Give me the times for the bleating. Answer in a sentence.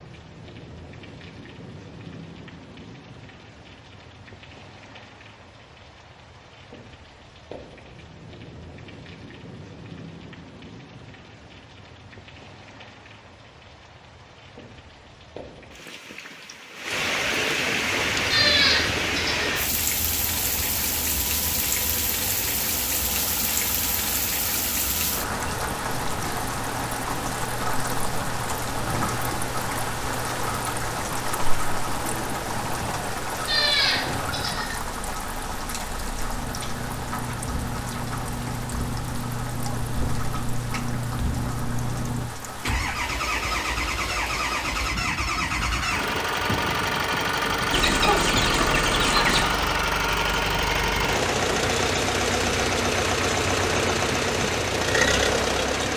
The bleating can be heard from 18.3 to 19.6 s and from 33.5 to 34.8 s.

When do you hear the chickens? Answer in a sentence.
The chickens can be heard from 47.7 to 49.5 s.